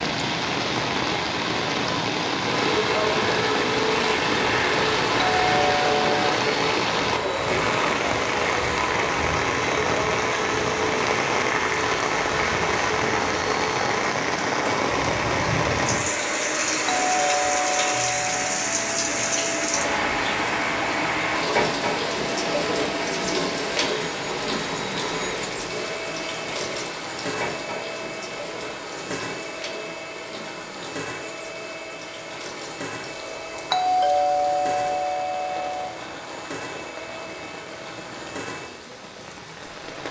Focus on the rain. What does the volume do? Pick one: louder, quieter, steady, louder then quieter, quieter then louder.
quieter.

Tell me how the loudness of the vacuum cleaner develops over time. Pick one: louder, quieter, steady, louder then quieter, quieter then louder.
quieter.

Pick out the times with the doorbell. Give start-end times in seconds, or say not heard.
5.4-6.3, 16.9-18.7, 33.7-36.0.